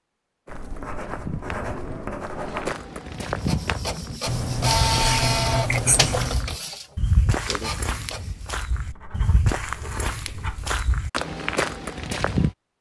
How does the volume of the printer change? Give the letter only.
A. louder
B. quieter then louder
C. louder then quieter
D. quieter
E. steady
C.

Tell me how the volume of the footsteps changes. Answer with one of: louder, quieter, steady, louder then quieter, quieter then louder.
louder.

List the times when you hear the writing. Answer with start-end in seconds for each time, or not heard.
0.5-2.8, 4.2-6.5, 8.8-10.7.